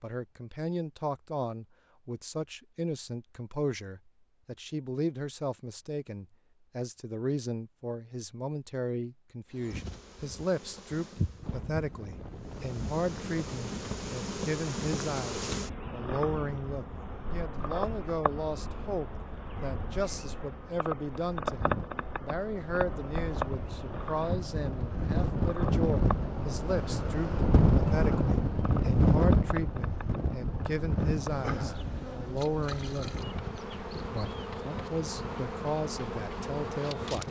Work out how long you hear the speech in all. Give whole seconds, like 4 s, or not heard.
36 s.